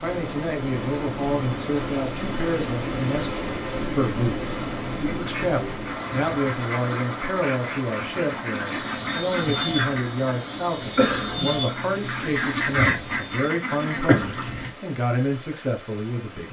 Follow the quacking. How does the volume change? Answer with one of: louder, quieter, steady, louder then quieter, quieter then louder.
louder.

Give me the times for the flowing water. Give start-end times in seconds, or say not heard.
0.0-16.4.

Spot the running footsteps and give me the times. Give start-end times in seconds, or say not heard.
not heard.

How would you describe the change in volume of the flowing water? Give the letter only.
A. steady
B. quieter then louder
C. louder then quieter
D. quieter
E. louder
D.